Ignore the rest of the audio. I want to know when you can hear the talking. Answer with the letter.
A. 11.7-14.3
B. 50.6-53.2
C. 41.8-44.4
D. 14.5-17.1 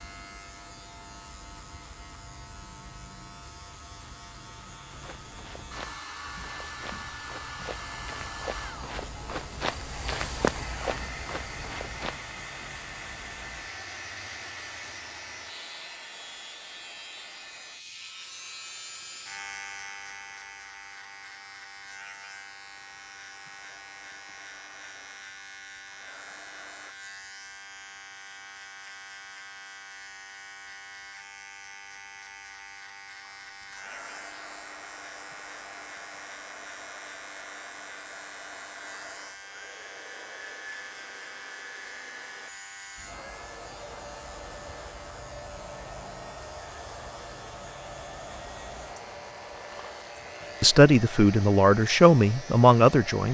B.